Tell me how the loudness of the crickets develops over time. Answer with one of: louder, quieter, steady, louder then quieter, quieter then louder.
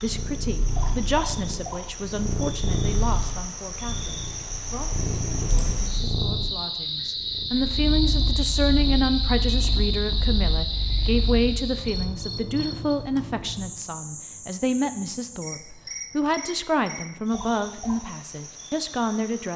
louder then quieter.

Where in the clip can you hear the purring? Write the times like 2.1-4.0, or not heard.
0.0-11.8.